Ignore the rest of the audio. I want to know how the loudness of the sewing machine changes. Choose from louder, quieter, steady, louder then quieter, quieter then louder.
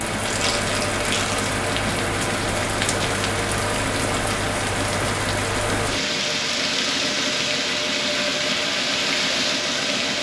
steady.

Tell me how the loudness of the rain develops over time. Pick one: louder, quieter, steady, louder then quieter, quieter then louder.
steady.